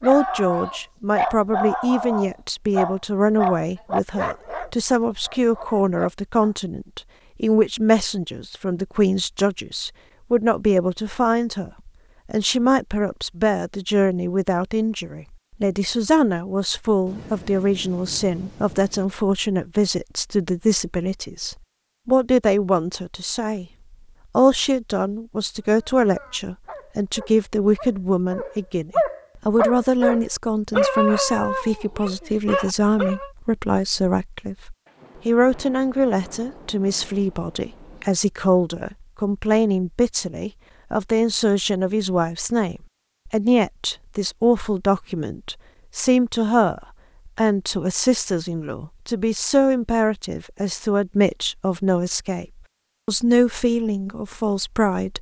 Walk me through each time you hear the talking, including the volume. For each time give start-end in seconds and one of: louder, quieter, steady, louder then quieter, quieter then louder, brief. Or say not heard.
0.0-23.6 steady
24.4-52.5 steady
53.0-55.1 brief.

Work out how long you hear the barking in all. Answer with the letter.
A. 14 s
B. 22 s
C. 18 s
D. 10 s
A.